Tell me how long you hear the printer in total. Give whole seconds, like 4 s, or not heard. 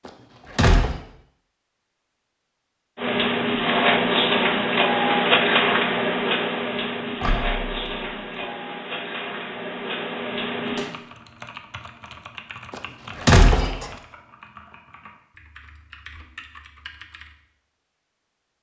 8 s.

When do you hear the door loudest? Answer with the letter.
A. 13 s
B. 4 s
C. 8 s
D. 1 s
A.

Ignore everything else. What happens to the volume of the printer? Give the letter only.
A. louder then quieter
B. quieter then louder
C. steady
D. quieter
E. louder
D.